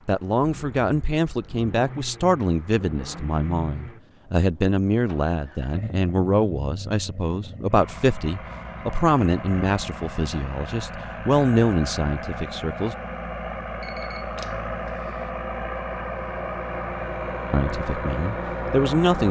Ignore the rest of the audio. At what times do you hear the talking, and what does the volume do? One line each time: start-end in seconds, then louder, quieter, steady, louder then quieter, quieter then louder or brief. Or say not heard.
0.1-12.9 steady
17.5-19.2 brief.